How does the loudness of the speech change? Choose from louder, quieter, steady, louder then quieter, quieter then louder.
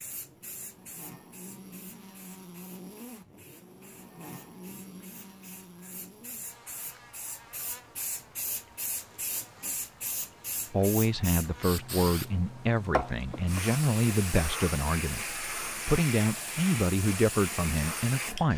steady.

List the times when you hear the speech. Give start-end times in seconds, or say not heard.
10.7-18.5.